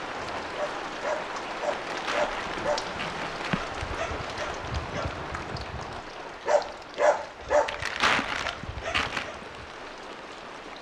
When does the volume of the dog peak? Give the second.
7 s.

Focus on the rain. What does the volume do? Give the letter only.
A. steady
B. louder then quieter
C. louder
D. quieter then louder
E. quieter
E.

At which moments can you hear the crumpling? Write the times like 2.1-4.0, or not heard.
1.7-3.7, 7.7-9.2.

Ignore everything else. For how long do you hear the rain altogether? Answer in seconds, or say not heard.
11 s.